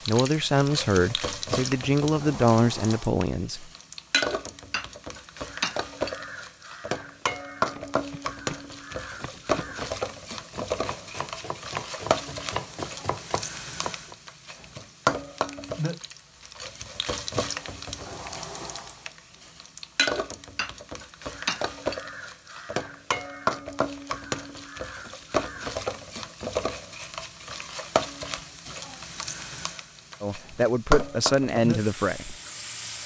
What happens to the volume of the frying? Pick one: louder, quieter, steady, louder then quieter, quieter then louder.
steady.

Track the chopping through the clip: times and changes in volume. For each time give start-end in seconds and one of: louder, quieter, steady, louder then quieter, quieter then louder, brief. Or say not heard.
7.2-14.2 louder.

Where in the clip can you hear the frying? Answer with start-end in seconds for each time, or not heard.
0.0-33.0.